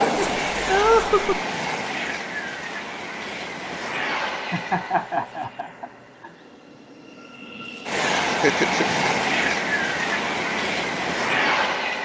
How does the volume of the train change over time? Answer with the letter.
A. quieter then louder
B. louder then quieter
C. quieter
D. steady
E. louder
A.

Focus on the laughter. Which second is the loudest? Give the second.
1 s.